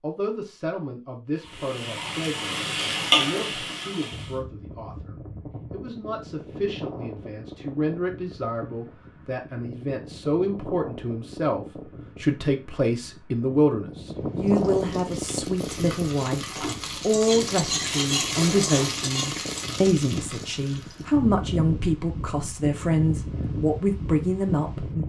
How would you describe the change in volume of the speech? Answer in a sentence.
The loudness of the speech goes up.